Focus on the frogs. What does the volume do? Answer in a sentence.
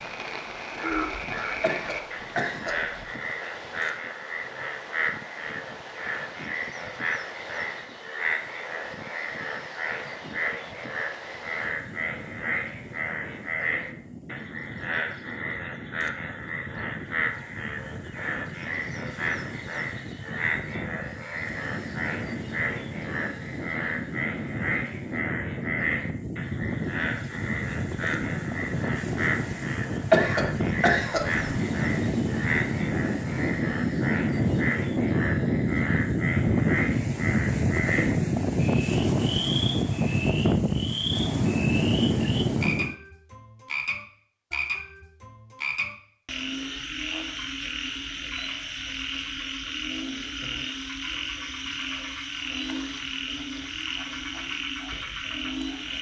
The volume of the frogs stays about the same.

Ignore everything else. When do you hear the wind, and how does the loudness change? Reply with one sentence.
You can hear the wind from 0.0 to 43.0 s, getting louder.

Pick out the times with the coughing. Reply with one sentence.
The coughing can be heard from 1.6 to 2.9 s and from 30.1 to 31.4 s.